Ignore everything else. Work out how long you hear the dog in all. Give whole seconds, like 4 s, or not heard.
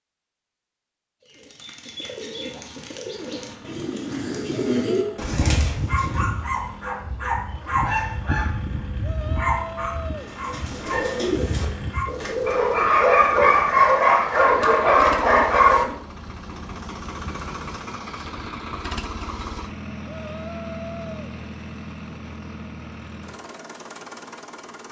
11 s.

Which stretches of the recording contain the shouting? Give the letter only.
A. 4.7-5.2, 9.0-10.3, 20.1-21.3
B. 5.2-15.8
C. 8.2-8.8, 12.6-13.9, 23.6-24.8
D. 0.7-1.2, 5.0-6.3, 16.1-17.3
A.